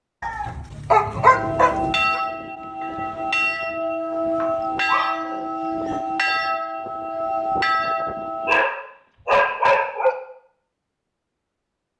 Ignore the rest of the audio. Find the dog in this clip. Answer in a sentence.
You can hear the dog from 0.2 to 2.2 s, from 4.1 to 6.0 s and from 8.2 to 10.2 s.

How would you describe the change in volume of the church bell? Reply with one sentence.
The loudness of the church bell stays about the same.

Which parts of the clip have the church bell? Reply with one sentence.
You can hear the church bell from 1.1 to 8.7 s.